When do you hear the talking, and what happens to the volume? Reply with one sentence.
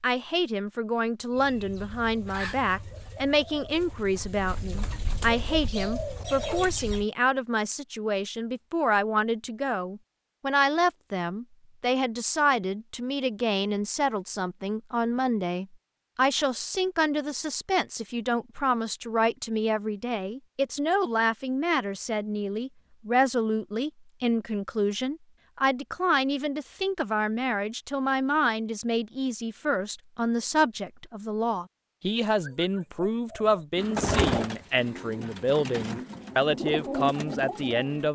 The talking can be heard from 0.0 to 38.0 s, at a steady volume.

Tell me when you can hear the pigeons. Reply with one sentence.
You can hear the pigeons from 1.3 to 7.0 s and from 32.4 to 38.0 s.